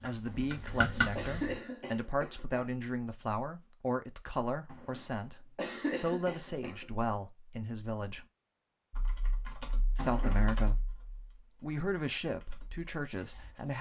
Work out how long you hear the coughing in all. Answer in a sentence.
You can hear the coughing for 5 seconds altogether.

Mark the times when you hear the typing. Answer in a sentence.
The typing can be heard from 0.0 to 1.6 s and from 8.9 to 13.7 s.